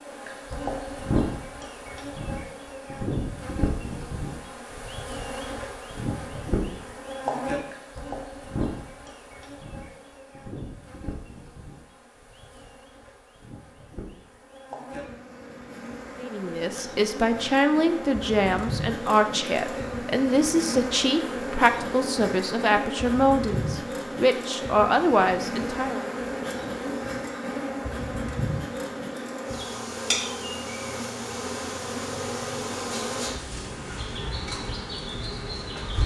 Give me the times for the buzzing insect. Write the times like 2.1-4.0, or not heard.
0.0-36.0.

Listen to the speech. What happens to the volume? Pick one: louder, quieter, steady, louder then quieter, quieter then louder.
steady.